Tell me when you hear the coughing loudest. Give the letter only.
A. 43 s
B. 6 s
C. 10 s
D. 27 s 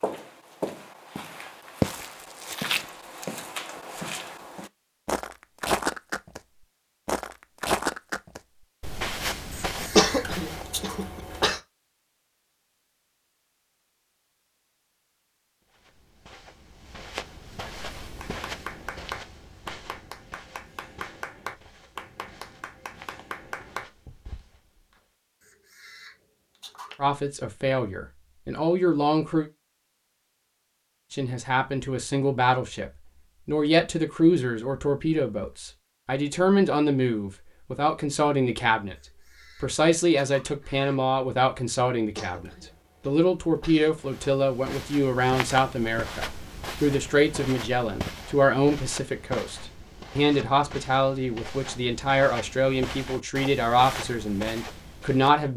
C.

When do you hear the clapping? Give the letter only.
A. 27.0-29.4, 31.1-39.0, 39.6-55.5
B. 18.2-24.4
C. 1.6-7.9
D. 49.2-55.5
B.